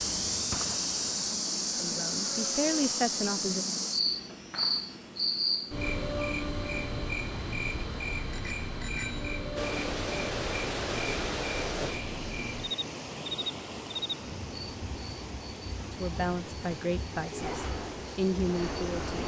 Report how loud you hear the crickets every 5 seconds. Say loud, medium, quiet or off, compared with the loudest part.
loud, loud, medium, quiet.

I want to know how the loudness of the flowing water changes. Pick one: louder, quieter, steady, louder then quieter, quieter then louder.
quieter.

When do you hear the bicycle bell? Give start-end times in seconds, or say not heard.
8.3-9.3.